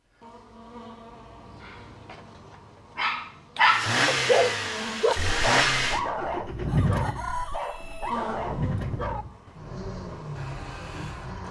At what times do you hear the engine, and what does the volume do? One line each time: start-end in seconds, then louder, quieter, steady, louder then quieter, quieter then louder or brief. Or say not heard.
3.6-11.4 quieter.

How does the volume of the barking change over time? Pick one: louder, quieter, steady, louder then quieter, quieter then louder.
louder then quieter.